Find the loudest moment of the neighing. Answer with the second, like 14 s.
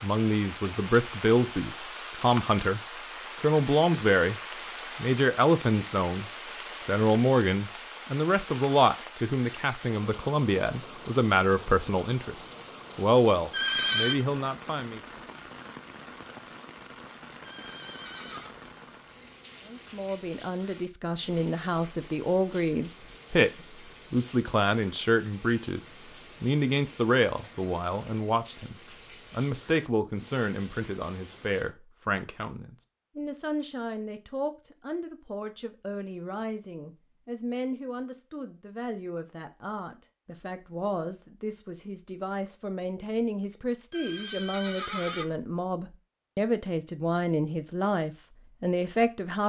14 s.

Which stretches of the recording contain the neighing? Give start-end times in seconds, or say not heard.
13.5-14.2, 17.4-18.6, 43.9-45.2.